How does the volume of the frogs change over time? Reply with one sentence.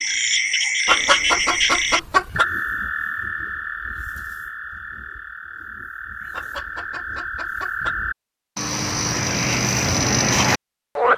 The loudness of the frogs goes down, then up.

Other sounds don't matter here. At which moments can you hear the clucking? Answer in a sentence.
You can hear the clucking from 0.8 to 2.5 s and from 6.3 to 8.0 s.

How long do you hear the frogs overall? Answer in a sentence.
The frogs can be heard for 11 seconds in total.